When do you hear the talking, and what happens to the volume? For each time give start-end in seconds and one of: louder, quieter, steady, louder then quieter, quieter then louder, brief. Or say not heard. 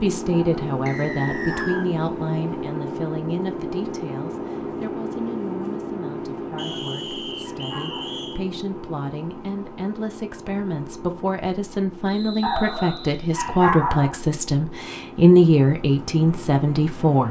0.0-17.2 quieter then louder.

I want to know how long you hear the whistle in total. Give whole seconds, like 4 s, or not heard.
4 s.